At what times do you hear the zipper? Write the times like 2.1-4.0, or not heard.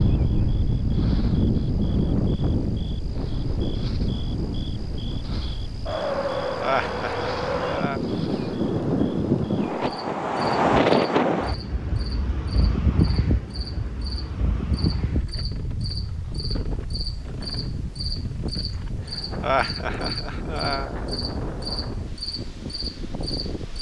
not heard.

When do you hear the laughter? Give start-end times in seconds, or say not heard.
6.5-8.0, 19.4-21.0.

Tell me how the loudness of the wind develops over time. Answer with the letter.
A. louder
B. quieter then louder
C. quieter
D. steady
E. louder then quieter
C.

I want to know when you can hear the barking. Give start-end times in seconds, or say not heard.
not heard.